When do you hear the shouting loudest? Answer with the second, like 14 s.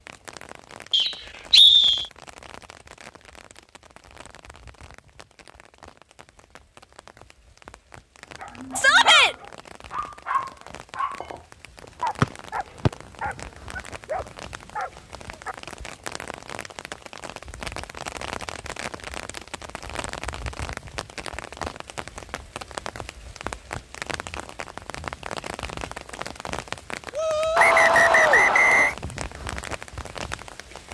9 s.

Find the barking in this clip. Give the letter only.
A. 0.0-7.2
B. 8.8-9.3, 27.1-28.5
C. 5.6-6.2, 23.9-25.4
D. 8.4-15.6
D.